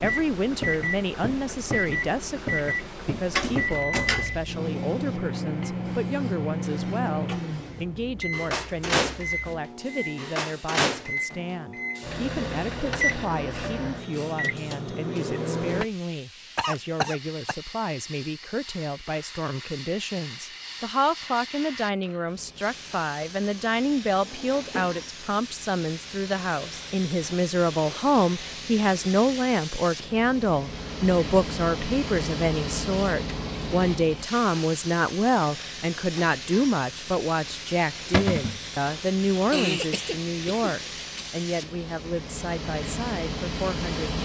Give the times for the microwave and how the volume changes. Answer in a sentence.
The microwave can be heard from 0.0 to 15.8 s, at a steady volume.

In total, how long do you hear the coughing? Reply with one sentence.
You can hear the coughing for 3 seconds altogether.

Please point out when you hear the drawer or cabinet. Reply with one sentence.
You can hear the drawer or cabinet from 3.4 to 4.5 s, from 24.2 to 25.1 s and from 38.1 to 38.6 s.